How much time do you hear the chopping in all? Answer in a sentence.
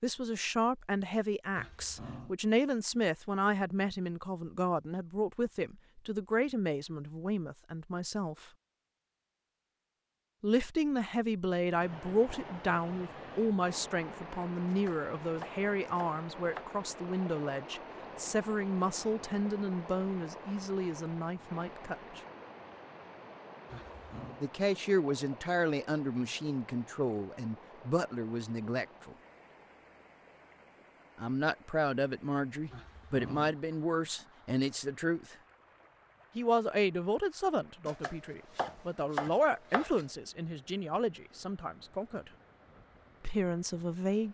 The chopping can be heard for 4 seconds in total.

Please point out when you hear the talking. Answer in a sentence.
You can hear the talking from 0.0 to 8.5 s, from 10.4 to 22.2 s, from 24.4 to 29.1 s, from 31.1 to 35.4 s, from 36.4 to 42.3 s and from 43.2 to 44.2 s.